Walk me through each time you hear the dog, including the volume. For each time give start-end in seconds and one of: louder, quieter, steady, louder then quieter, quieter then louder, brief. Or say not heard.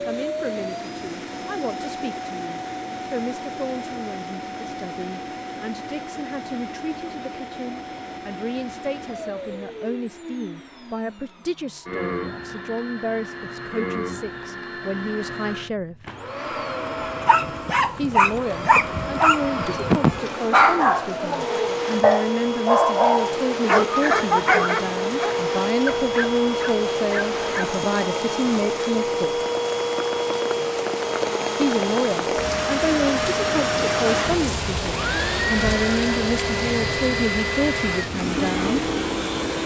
17.2-27.8 quieter.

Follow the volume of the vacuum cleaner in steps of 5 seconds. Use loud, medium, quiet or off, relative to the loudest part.
medium, medium, medium, medium, loud, loud, loud, loud.